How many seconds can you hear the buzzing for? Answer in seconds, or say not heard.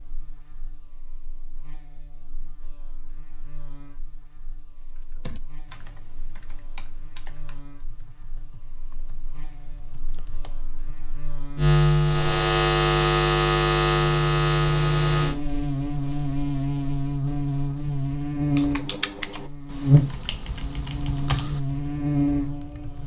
23 s.